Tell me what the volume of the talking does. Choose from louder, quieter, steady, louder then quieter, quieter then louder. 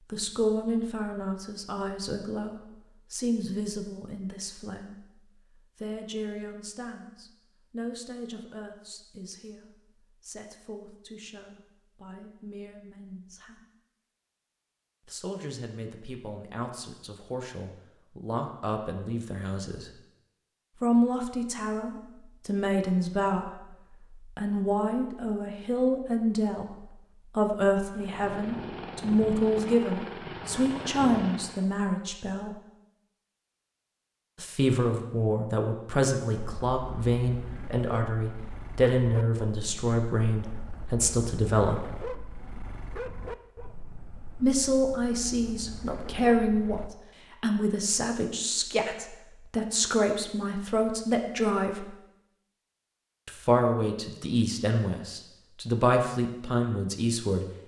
louder.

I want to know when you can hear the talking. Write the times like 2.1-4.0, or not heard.
0.1-13.7, 15.1-19.9, 20.8-32.5, 34.4-41.9, 44.4-51.9, 53.2-57.5.